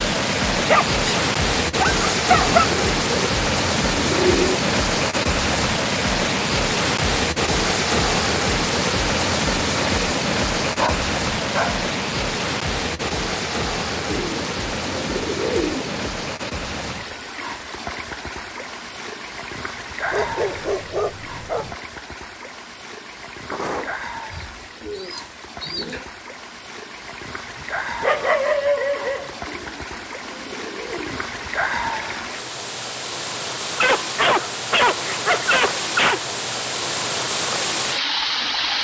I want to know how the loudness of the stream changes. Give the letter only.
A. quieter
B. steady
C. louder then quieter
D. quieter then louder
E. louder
D.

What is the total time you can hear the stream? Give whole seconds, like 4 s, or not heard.
39 s.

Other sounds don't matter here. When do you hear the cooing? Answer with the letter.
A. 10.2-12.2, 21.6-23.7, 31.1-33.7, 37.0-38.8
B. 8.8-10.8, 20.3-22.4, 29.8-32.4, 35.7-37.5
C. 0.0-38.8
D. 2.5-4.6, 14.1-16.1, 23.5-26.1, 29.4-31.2
D.